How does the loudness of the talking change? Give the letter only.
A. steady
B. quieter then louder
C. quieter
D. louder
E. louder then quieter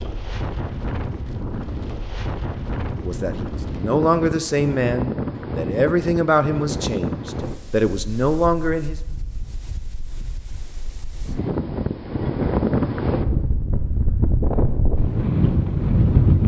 B.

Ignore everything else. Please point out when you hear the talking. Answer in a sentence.
You can hear the talking from 3.0 to 8.9 s.